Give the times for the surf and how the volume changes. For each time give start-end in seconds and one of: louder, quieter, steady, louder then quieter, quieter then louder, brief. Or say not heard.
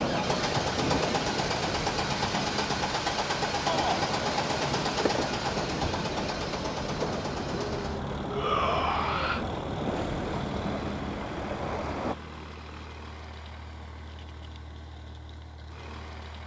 0.0-12.2 steady.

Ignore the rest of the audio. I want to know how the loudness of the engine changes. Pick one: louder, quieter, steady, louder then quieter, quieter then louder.
quieter.